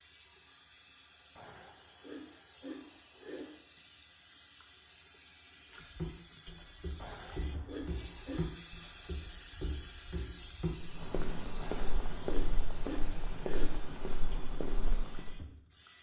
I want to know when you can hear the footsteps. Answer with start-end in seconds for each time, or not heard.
5.9-15.4.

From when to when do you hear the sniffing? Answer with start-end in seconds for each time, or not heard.
1.4-3.6, 7.0-8.4, 11.6-13.8.